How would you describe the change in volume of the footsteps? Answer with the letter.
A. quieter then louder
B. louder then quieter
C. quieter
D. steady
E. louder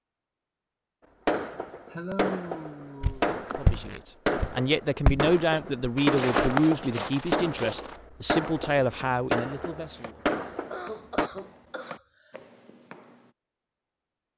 C.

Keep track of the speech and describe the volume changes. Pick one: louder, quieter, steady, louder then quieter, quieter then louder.
steady.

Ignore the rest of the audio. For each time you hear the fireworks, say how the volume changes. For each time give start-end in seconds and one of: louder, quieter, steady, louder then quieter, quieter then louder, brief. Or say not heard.
1.2-11.3 steady.